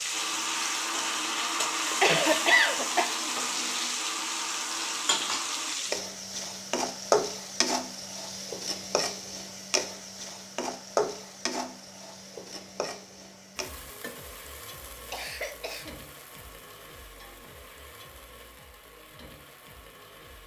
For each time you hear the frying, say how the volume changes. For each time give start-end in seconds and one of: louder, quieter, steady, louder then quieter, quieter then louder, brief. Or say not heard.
0.0-20.4 quieter.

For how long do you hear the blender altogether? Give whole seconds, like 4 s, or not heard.
6 s.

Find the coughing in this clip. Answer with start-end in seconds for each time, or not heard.
1.9-3.0, 15.1-15.9.